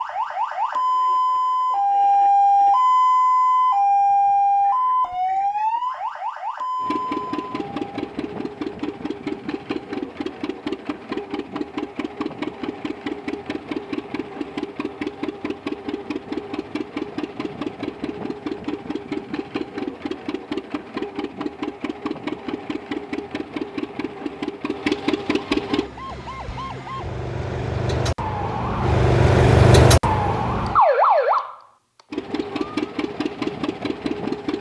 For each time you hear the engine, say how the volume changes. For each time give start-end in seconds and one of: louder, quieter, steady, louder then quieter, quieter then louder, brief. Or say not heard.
6.8-25.9 steady
32.1-34.5 brief.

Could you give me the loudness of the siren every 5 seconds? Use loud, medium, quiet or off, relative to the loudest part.
loud, medium, off, off, off, loud, loud.